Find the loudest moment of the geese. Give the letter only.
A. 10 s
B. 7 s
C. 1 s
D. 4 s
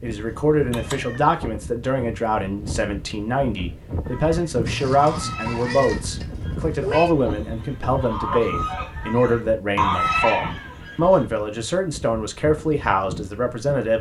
A.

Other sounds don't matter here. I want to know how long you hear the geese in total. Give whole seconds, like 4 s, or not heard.
7 s.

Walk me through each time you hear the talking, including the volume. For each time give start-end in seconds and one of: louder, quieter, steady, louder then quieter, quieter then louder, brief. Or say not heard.
0.0-13.9 steady.